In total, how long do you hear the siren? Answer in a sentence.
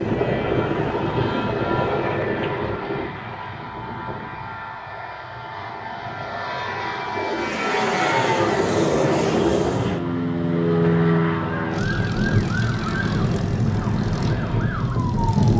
You can hear the siren for 4 seconds altogether.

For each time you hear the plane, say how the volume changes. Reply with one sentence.
The plane can be heard from 0.0 to 15.5 s, getting quieter then louder.